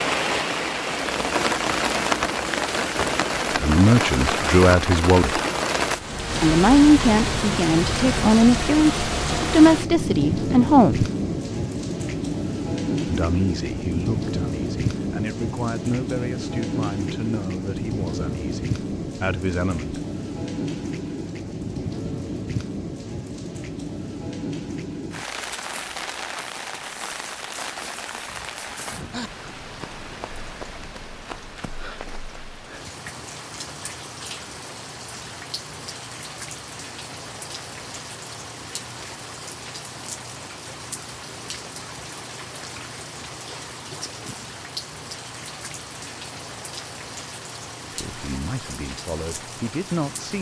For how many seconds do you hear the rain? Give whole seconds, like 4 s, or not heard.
50 s.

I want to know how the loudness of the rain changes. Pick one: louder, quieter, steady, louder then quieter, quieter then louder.
quieter.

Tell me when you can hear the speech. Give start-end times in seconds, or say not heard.
3.5-5.4, 6.4-11.1, 13.1-20.0, 48.0-50.3.